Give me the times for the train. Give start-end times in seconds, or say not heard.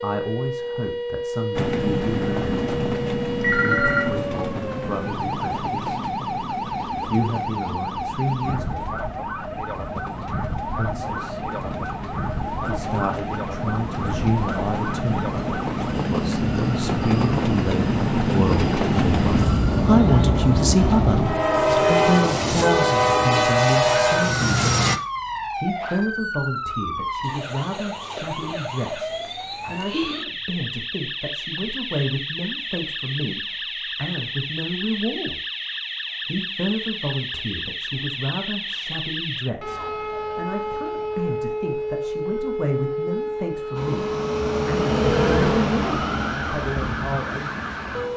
1.6-25.0, 43.8-48.1.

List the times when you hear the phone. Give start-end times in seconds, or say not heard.
3.4-4.2, 45.0-45.6.